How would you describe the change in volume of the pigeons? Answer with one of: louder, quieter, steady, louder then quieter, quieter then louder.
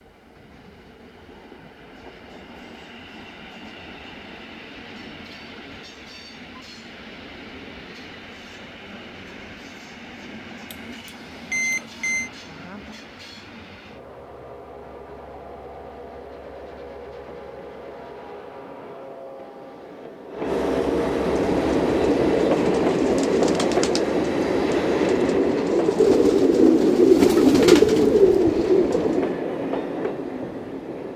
louder.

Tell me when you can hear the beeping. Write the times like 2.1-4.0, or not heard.
10.7-12.3.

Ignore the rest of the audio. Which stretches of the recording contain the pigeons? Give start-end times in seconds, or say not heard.
21.3-29.4.